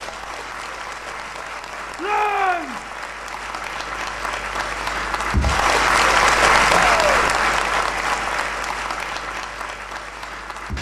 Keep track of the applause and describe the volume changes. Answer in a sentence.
The loudness of the applause goes up, then down.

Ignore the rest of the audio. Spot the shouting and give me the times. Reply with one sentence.
You can hear the shouting from 2.0 to 2.8 s and from 6.7 to 7.2 s.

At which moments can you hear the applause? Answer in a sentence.
The applause can be heard from 0.0 to 10.7 s.